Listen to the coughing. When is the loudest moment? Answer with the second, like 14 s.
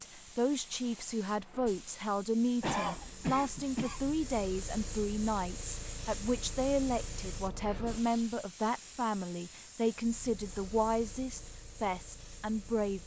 3 s.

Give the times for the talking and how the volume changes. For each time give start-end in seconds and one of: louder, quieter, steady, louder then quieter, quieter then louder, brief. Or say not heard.
0.0-13.0 steady.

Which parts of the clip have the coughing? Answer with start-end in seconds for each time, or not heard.
2.6-4.1.